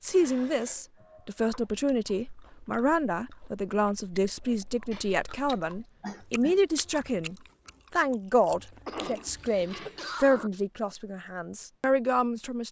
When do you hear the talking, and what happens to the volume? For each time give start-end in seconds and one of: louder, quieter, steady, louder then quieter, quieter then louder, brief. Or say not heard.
0.0-12.6 steady.